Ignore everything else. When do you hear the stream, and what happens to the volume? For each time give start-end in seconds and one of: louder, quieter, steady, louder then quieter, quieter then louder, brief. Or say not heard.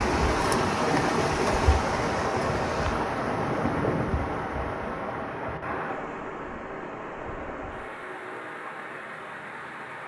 0.0-10.0 quieter.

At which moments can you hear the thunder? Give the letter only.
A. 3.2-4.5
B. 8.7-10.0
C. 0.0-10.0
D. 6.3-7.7
A.